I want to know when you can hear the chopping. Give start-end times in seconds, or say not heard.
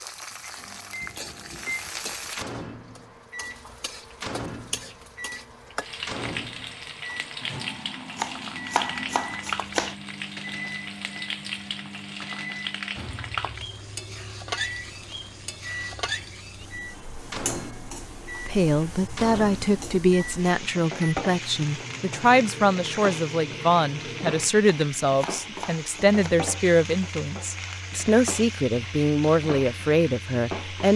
8.2-9.9, 24.6-26.3.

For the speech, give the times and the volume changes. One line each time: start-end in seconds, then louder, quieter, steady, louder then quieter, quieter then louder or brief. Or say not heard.
18.4-30.9 steady.